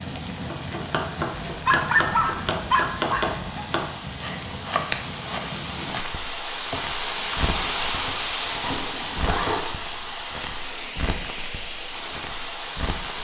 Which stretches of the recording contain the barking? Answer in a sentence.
The barking can be heard from 1.5 to 3.6 s.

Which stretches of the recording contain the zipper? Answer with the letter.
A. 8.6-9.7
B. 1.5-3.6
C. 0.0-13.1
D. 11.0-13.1
A.